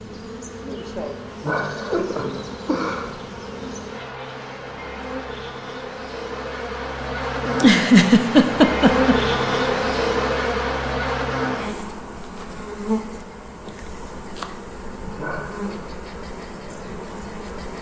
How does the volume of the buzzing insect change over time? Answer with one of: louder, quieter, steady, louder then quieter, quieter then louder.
louder then quieter.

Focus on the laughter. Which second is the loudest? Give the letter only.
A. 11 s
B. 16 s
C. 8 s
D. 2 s
C.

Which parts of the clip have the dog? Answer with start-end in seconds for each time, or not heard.
not heard.